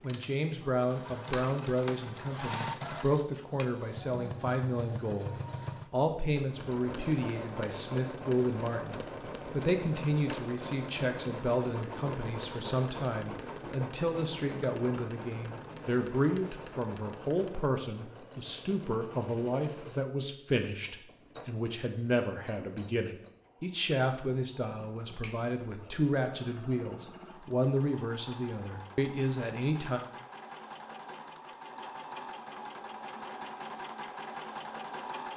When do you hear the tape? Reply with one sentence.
The tape can't be heard in this clip.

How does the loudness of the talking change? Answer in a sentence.
The loudness of the talking stays about the same.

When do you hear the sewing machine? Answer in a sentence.
The sewing machine can be heard from 0.0 to 35.3 s.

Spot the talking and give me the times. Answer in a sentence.
You can hear the talking from 0.0 to 30.0 s.